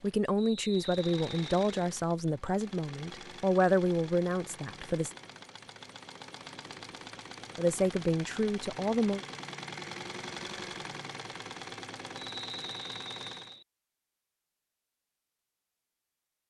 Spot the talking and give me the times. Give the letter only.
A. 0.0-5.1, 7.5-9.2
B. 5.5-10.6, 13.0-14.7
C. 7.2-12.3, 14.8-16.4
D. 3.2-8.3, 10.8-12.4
A.